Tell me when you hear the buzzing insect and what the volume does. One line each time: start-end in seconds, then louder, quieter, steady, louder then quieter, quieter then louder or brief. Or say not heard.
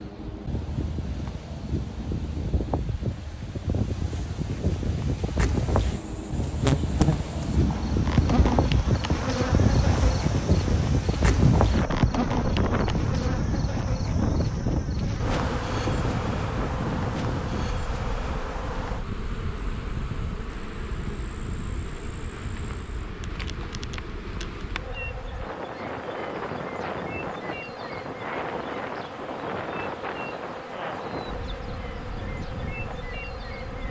5.7-33.8 quieter.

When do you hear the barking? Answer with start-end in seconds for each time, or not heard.
not heard.